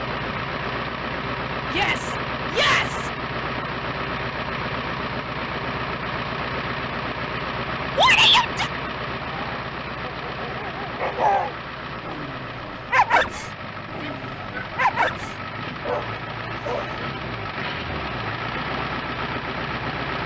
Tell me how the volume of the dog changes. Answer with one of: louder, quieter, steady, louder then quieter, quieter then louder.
steady.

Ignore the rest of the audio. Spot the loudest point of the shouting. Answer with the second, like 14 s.
8 s.